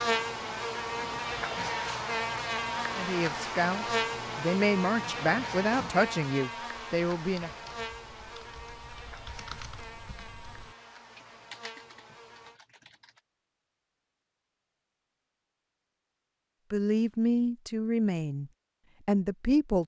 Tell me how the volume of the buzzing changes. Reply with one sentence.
The volume of the buzzing goes down.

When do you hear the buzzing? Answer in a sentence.
The buzzing can be heard from 0.0 to 12.6 s.